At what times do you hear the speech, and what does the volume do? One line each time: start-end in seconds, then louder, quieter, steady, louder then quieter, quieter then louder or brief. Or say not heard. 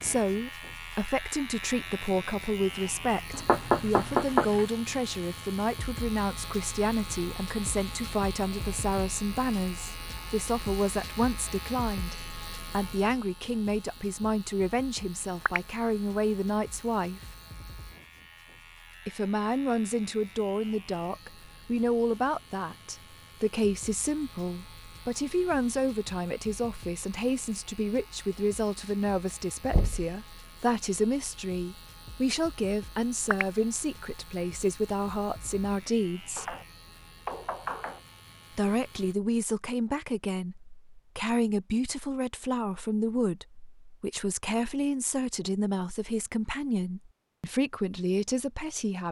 0.0-17.2 steady
19.1-36.5 steady
38.5-49.0 steady.